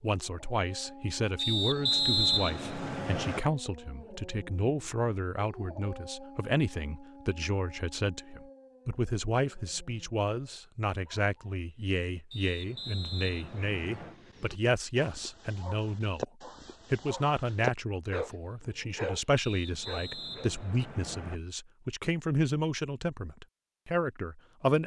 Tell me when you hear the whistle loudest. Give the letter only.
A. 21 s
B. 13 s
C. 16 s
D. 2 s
D.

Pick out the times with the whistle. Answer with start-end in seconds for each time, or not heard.
1.4-3.4, 12.3-14.2, 19.4-21.4.